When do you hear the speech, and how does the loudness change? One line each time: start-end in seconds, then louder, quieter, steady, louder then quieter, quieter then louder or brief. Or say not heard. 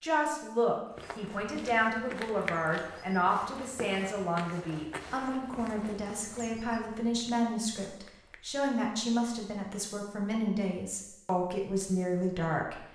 0.0-12.8 steady.